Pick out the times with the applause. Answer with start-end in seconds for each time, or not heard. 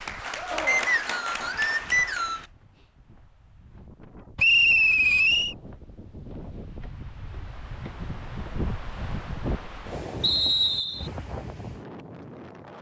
0.0-2.5.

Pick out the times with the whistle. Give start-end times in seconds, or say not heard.
0.7-2.5, 4.3-5.5, 10.2-11.1.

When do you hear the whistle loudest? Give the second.
5 s.